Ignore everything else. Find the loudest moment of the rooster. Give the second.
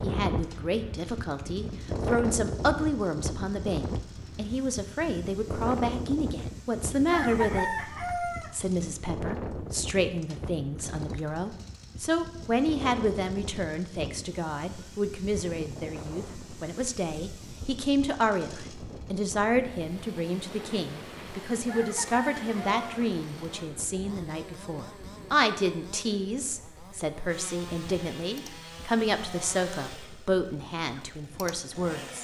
8 s.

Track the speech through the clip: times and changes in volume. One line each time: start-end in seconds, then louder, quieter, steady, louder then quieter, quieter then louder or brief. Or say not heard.
0.0-32.1 steady.